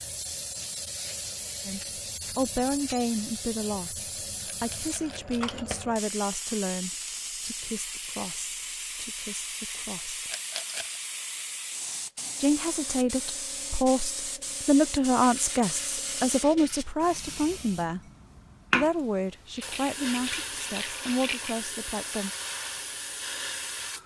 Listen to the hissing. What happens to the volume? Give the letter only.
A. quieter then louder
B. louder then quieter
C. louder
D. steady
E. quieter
D.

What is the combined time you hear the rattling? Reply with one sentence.
You can hear the rattling for 4 seconds altogether.